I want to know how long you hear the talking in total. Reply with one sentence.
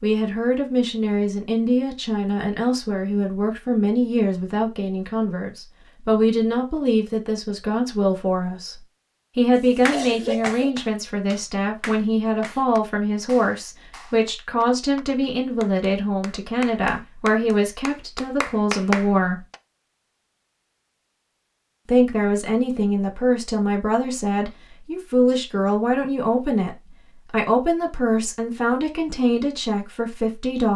The talking can be heard for 28 seconds in total.